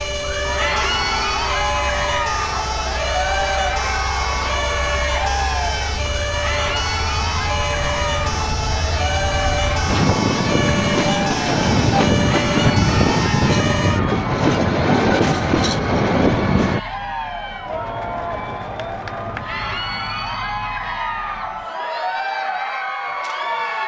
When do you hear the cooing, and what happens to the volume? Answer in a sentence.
The cooing can't be heard in this clip.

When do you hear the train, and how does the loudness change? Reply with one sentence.
The train can be heard from 0.0 to 16.8 s, getting louder.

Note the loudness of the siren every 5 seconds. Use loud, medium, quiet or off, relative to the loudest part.
loud, loud, loud, medium, medium.